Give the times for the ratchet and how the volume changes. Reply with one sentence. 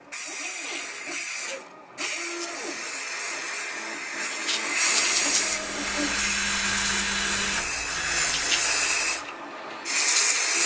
The ratchet can't be heard in this clip.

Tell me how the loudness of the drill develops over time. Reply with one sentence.
The loudness of the drill goes up, then down.